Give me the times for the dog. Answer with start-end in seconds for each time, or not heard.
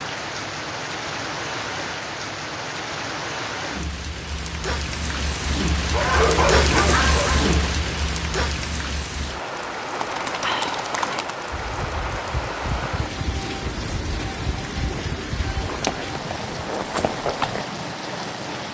5.8-7.7.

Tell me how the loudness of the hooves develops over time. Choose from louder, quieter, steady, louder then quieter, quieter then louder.
quieter then louder.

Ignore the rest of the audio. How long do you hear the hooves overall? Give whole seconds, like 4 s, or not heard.
8 s.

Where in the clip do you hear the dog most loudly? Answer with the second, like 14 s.
6 s.